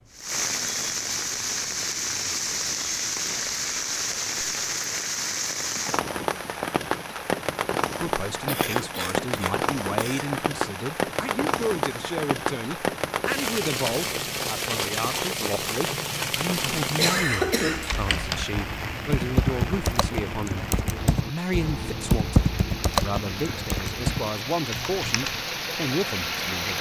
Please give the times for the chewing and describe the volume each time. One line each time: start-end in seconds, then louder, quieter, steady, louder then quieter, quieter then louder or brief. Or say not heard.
not heard.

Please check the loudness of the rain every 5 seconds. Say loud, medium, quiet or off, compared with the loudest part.
loud, loud, loud, loud, medium, loud.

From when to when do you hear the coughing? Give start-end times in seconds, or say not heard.
8.4-10.3, 16.9-18.1.